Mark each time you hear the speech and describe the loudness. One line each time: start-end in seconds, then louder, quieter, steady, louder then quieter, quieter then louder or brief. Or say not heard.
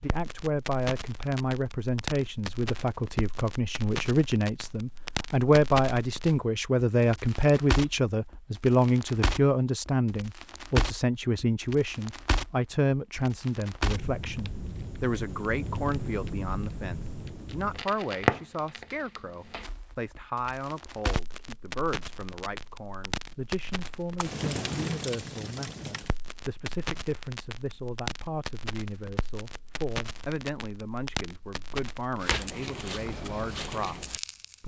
0.0-34.6 quieter.